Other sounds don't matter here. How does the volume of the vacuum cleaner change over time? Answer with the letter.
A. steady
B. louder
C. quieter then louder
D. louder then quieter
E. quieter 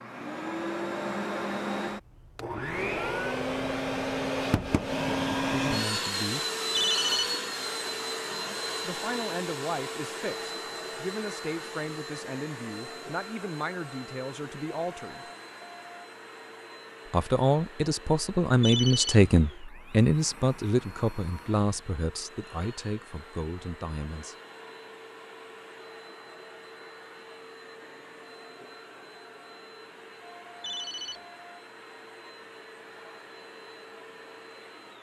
E.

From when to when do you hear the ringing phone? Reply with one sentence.
The ringing phone can be heard from 6.7 to 7.3 s, from 18.6 to 19.2 s and from 30.6 to 31.2 s.